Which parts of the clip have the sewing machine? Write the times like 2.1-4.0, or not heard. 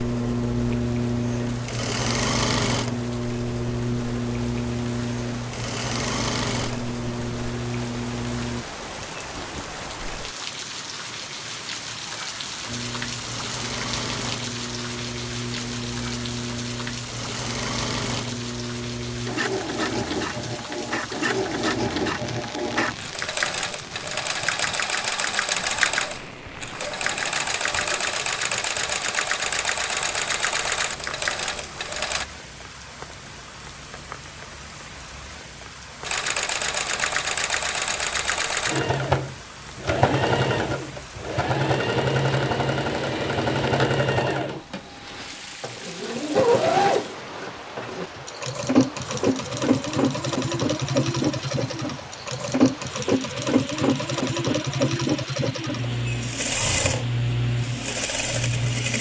0.0-8.7, 12.7-32.2, 36.0-58.9.